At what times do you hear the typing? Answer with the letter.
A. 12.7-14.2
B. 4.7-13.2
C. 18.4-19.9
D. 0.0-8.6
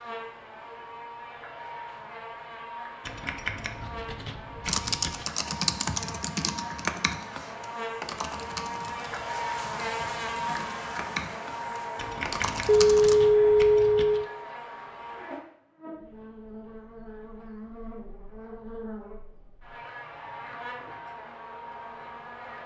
B.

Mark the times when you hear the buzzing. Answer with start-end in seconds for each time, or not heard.
0.0-22.6.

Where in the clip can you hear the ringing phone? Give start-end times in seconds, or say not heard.
12.7-14.2.